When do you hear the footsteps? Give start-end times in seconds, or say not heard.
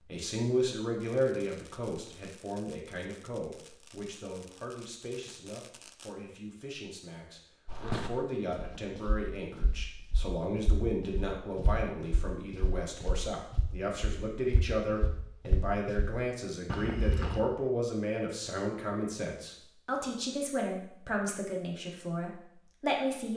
7.7-17.4.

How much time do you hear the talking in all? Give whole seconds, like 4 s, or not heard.
23 s.